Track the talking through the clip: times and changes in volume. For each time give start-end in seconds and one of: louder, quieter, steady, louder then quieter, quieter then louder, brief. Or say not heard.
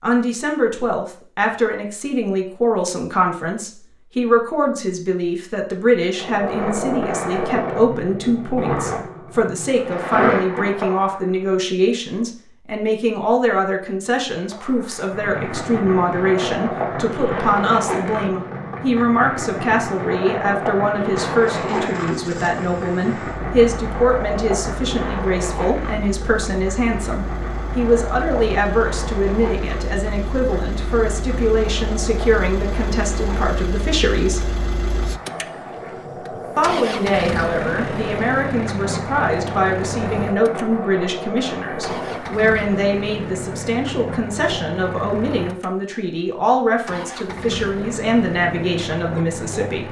0.0-34.5 steady
36.5-49.8 steady.